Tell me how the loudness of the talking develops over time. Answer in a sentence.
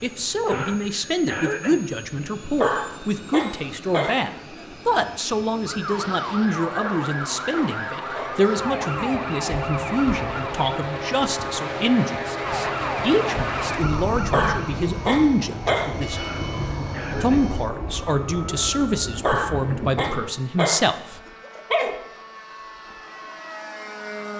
The volume of the talking stays about the same.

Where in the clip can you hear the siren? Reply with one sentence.
You can hear the siren from 5.7 to 20.4 s.